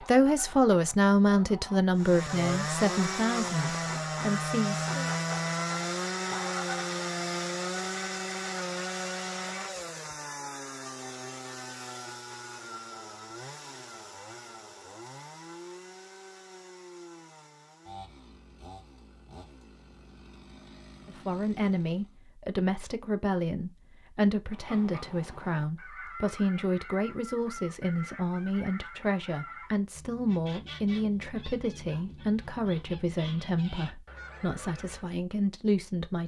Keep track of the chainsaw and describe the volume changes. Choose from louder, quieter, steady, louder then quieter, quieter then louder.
quieter.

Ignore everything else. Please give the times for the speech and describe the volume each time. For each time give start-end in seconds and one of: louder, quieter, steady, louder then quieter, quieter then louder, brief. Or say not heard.
0.1-5.1 quieter
21.1-36.2 steady.